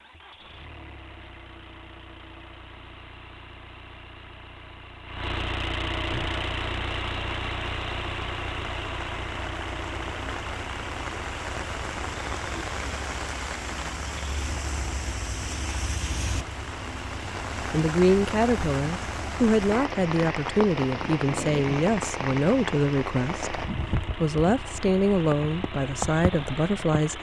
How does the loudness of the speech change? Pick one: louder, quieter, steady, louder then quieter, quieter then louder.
steady.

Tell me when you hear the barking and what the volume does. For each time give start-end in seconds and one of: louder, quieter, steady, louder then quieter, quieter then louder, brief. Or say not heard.
not heard.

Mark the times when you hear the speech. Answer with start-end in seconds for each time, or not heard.
17.7-27.1.